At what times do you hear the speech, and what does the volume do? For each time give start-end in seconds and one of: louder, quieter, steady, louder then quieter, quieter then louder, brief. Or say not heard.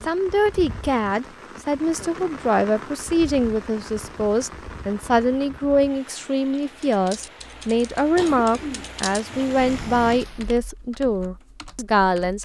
0.0-12.4 steady.